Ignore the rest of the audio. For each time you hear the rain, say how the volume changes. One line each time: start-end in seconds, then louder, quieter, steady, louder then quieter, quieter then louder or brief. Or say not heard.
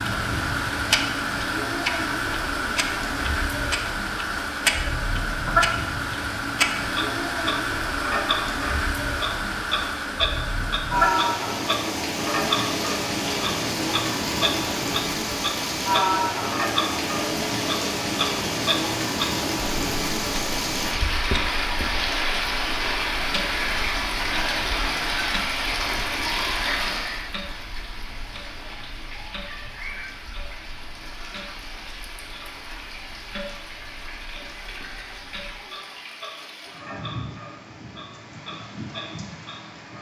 0.0-39.9 quieter.